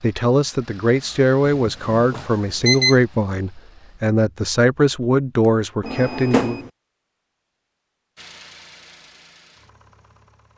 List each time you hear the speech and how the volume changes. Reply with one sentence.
You can hear the speech from 0.0 to 6.6 s, at a steady volume.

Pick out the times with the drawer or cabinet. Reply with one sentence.
The drawer or cabinet can be heard from 5.8 to 6.7 s.